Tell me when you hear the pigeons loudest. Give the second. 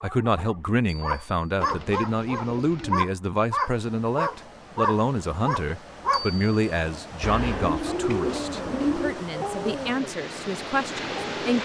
9 s.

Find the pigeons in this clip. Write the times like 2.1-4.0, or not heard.
1.6-3.1, 7.2-9.2.